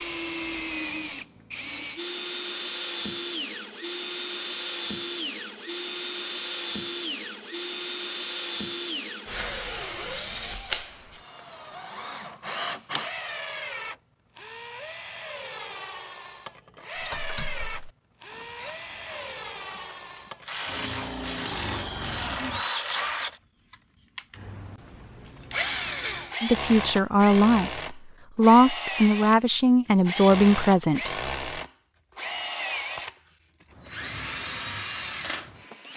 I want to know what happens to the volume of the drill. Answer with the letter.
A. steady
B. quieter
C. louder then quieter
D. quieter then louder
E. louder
A.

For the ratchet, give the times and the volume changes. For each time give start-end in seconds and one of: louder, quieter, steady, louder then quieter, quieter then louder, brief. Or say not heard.
16.9-23.4 louder.